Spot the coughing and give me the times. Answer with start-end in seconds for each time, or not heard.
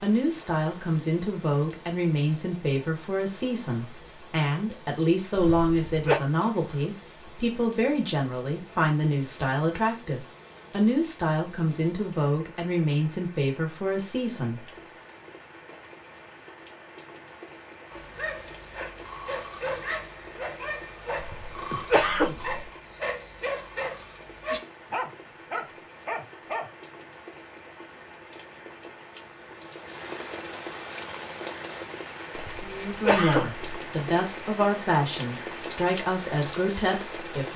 5.3-6.2, 21.2-22.6, 32.4-33.7.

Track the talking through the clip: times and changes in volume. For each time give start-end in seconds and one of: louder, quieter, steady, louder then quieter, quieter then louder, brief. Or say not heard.
0.0-14.7 steady
32.6-37.5 steady.